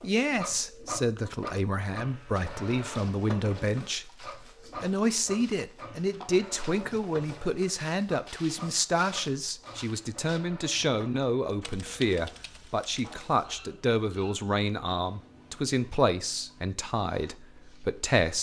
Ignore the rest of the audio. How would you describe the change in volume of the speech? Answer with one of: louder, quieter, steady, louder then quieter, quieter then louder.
steady.